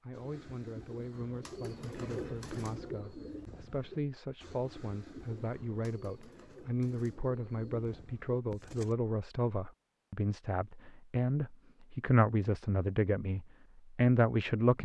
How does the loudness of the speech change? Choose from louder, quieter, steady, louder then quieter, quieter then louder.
louder.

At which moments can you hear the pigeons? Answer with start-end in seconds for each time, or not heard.
0.1-8.9.